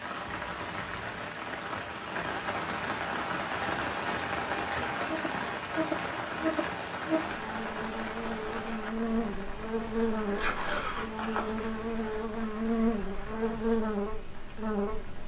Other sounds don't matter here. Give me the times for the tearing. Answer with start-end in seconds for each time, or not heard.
0.2-1.2, 10.3-11.8.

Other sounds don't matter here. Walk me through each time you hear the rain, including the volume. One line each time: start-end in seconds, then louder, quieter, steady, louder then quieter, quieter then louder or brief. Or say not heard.
0.0-15.2 quieter.